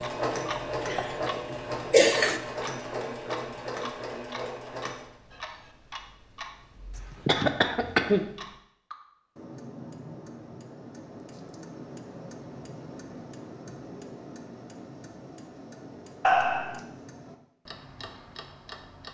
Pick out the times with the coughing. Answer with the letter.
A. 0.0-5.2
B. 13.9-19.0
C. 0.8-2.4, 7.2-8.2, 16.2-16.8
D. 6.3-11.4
C.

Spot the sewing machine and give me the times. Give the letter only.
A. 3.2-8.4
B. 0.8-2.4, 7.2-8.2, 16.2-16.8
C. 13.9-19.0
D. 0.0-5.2
D.